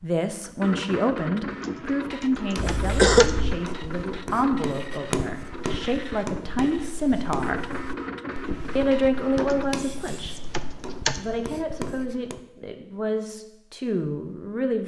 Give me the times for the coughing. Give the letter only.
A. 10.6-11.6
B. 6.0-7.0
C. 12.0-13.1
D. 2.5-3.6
D.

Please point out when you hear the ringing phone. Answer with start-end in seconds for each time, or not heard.
not heard.